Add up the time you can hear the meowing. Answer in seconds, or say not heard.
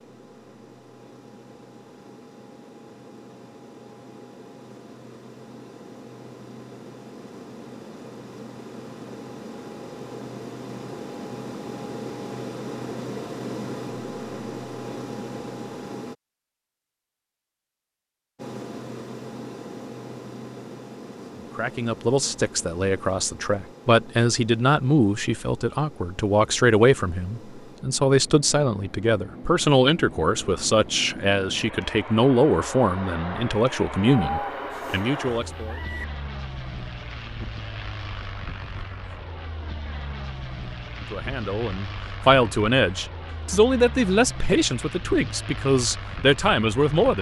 2 s.